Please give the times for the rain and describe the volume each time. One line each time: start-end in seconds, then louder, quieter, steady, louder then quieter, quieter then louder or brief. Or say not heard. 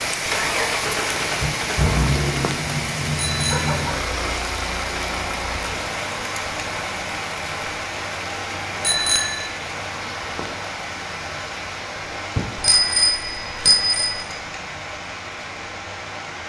0.0-16.4 quieter.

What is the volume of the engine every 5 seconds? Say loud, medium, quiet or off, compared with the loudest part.
loud, medium, medium, medium.